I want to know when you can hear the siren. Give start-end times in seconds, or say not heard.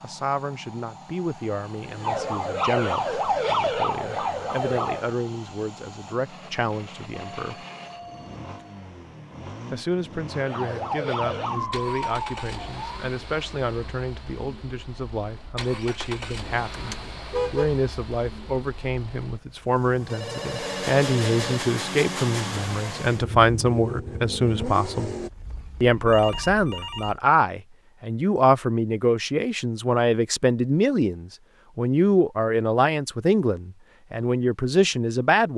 1.9-5.2, 10.3-12.9.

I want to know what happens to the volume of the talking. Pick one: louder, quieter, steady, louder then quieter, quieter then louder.
louder.